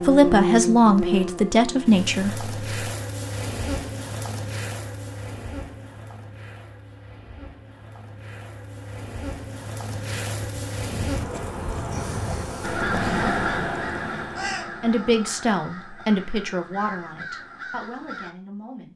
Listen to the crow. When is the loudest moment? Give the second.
13 s.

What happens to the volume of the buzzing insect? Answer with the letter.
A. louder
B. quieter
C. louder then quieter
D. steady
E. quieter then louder
E.